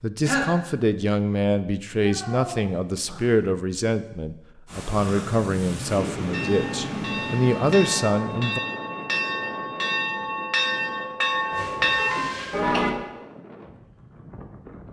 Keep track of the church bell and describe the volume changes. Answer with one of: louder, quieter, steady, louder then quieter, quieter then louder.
louder.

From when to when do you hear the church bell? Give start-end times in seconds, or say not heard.
6.3-12.9.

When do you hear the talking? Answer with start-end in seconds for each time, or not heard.
0.0-8.6.